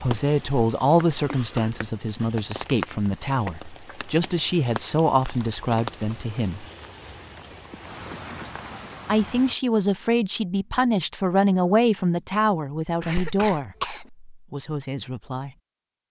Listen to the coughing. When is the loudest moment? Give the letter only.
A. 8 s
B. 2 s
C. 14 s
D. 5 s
C.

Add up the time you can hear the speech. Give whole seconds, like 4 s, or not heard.
13 s.